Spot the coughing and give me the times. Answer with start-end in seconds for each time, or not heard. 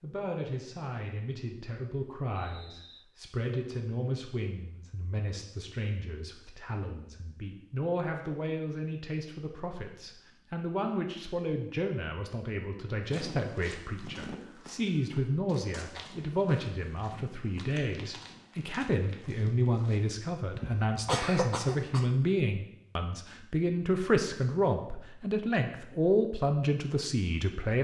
20.6-22.1.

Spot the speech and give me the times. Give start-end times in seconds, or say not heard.
0.0-27.7.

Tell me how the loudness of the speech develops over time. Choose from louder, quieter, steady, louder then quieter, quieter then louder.
louder.